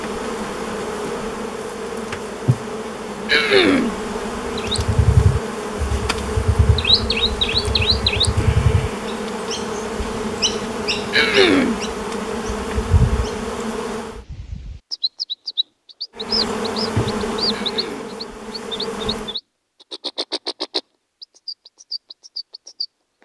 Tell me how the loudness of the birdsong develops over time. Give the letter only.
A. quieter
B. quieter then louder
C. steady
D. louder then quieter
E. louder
A.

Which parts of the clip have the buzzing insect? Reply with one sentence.
You can hear the buzzing insect from 0.0 to 14.2 s and from 16.1 to 19.4 s.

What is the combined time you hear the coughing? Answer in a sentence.
The coughing can be heard for 2 seconds in total.